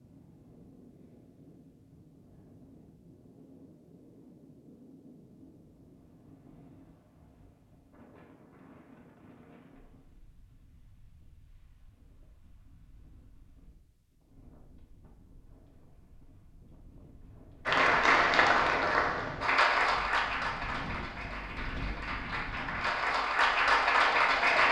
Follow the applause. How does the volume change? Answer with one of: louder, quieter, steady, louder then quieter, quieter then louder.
quieter then louder.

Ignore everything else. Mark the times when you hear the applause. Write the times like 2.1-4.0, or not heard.
17.6-24.6.